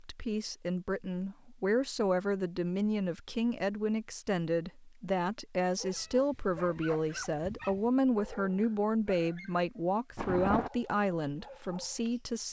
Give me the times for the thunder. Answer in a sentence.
The thunder can be heard from 10.2 to 10.7 s.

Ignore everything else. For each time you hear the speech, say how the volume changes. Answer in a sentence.
The speech can be heard from 0.0 to 12.4 s, at a steady volume.